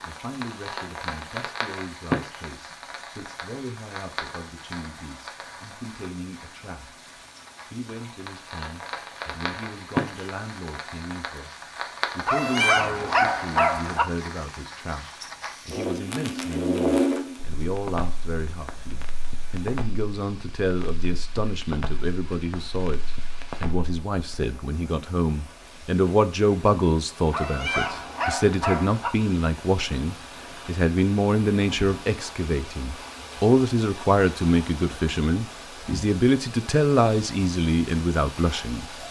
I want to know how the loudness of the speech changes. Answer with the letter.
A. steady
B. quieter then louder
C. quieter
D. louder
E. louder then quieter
D.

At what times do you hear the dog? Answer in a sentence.
You can hear the dog from 12.2 to 14.1 s and from 27.3 to 29.1 s.